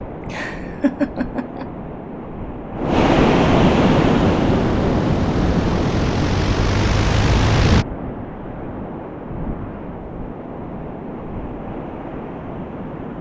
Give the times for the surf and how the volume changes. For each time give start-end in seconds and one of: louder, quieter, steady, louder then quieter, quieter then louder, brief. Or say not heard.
0.0-13.1 louder then quieter.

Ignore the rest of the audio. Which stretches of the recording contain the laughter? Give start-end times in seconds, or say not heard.
0.3-1.6.